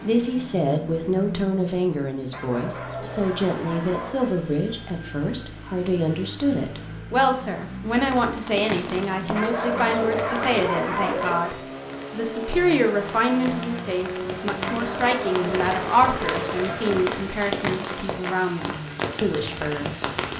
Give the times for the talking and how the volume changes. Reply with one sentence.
The talking can be heard from 0.0 to 20.1 s, at a steady volume.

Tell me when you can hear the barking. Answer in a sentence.
You can hear the barking from 2.3 to 4.3 s, from 9.3 to 11.6 s and from 14.7 to 16.9 s.